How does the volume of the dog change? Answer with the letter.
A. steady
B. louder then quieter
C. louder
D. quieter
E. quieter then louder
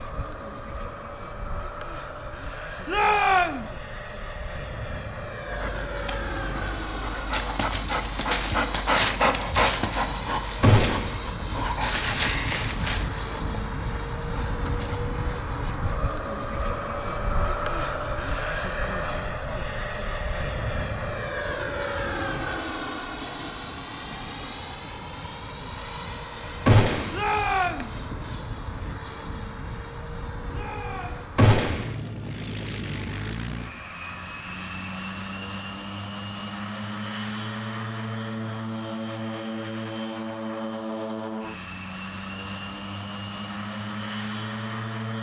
B.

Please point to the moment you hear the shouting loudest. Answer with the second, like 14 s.
3 s.